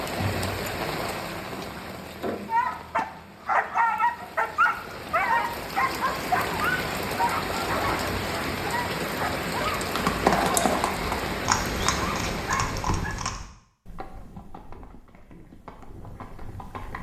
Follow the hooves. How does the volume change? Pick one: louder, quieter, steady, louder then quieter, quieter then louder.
quieter.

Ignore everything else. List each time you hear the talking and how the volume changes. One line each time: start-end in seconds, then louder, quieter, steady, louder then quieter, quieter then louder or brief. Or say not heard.
not heard.